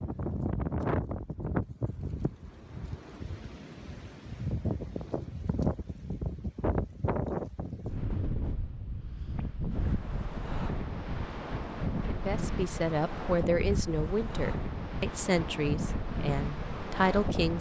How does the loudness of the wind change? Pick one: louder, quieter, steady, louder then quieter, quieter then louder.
steady.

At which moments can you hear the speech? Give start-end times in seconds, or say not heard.
12.1-17.5.